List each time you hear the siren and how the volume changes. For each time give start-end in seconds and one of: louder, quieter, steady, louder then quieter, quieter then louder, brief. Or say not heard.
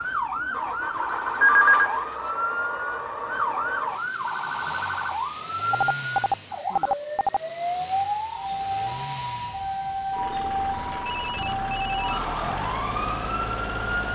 0.0-14.1 steady.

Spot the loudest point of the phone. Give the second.
2 s.